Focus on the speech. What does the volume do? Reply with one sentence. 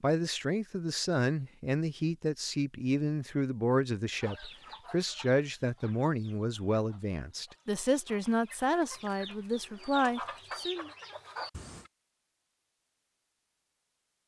The loudness of the speech stays about the same.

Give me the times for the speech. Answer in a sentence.
You can hear the speech from 0.0 to 10.9 s.